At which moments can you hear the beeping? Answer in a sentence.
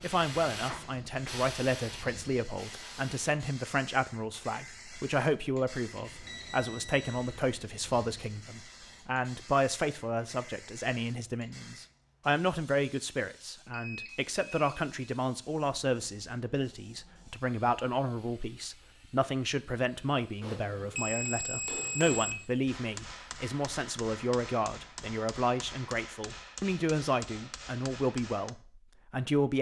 You can hear the beeping from 6.2 to 7.3 s, from 13.7 to 15.1 s and from 20.9 to 22.4 s.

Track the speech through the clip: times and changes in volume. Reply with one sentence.
You can hear the speech from 0.0 to 29.5 s, at a steady volume.